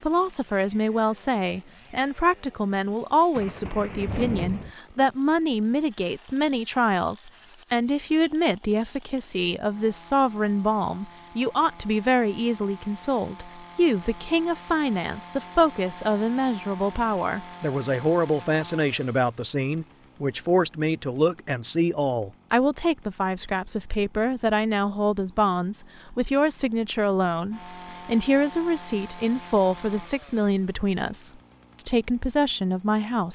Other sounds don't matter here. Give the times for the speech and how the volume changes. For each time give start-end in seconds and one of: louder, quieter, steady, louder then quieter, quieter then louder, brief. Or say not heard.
0.0-33.3 steady.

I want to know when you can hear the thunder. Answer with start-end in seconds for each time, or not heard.
3.3-4.8.